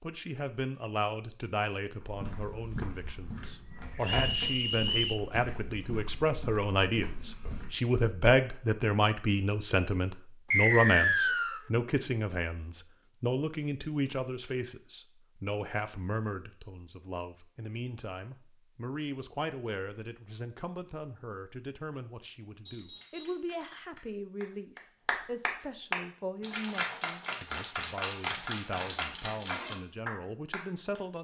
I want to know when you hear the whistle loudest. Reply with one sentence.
The volume of the whistle peaks at 11 seconds.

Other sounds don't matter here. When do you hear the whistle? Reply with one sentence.
The whistle can be heard from 4.0 to 5.2 s, from 10.5 to 11.6 s and from 22.6 to 23.4 s.